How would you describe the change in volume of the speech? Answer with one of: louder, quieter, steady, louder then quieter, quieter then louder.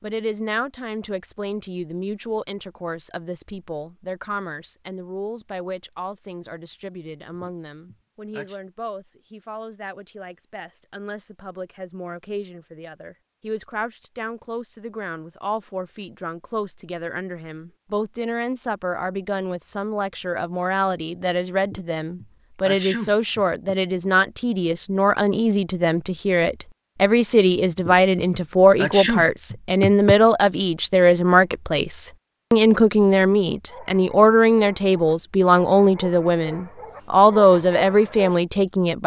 louder.